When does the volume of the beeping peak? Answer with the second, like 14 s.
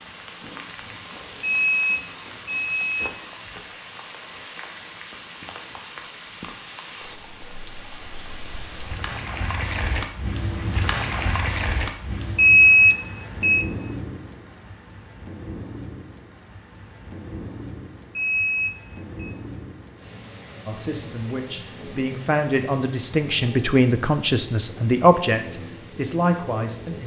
13 s.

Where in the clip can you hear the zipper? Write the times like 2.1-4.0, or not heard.
not heard.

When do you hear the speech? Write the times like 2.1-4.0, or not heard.
20.6-27.0.